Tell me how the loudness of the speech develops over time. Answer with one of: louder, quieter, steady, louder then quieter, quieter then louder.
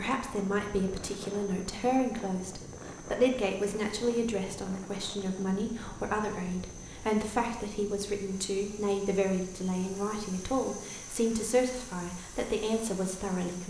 steady.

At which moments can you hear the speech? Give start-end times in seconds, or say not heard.
0.0-13.6.